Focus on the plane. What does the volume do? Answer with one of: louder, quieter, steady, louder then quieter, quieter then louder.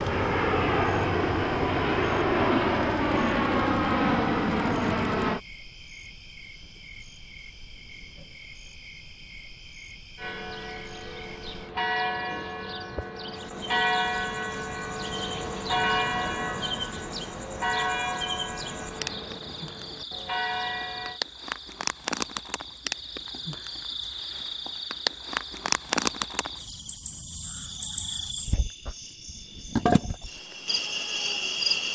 steady.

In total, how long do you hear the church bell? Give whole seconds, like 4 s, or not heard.
11 s.